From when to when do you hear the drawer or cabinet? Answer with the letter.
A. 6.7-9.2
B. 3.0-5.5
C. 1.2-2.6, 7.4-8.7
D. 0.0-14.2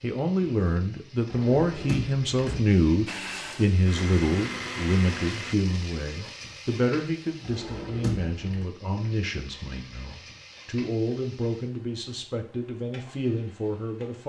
C.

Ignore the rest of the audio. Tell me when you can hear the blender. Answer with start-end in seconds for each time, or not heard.
3.0-5.5.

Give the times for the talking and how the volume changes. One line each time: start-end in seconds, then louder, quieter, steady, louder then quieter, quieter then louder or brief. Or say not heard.
0.0-14.2 quieter.